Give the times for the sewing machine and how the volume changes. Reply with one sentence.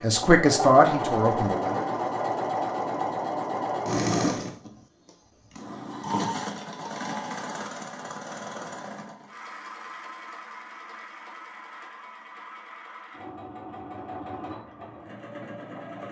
You can hear the sewing machine from 0.0 to 16.0 s, getting quieter.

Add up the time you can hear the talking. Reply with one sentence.
The talking can be heard for 2 seconds in total.